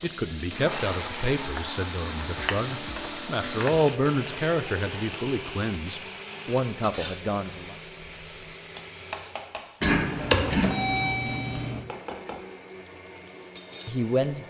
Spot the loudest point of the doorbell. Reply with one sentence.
The loudest moment of the doorbell is at 10 seconds.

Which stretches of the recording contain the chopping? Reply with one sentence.
The chopping can't be heard in this clip.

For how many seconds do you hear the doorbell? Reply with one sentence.
The doorbell can be heard for 2 seconds in total.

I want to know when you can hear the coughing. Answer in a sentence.
You can hear the coughing from 9.8 to 11.1 s.